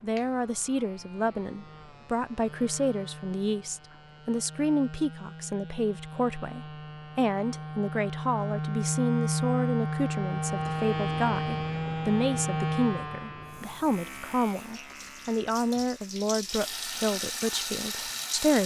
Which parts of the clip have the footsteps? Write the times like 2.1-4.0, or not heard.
not heard.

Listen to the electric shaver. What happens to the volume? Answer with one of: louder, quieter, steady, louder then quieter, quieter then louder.
louder then quieter.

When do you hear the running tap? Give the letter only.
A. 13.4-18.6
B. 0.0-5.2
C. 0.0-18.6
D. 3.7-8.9
A.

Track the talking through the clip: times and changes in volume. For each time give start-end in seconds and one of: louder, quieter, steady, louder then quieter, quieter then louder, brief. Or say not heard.
0.0-18.6 steady.